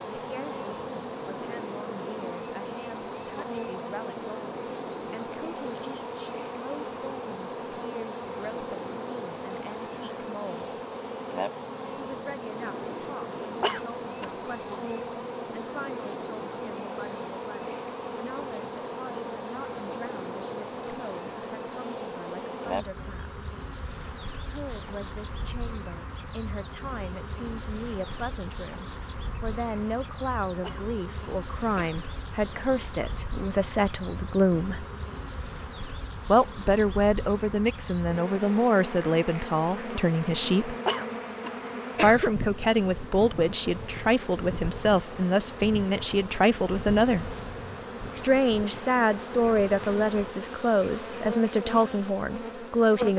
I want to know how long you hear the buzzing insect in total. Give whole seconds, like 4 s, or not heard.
53 s.